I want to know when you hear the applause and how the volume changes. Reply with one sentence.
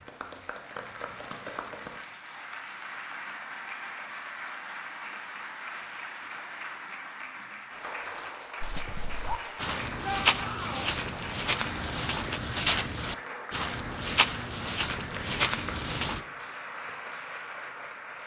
You can hear the applause from 0.0 to 18.2 s, at a steady volume.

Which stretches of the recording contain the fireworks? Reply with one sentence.
The fireworks can't be heard in this clip.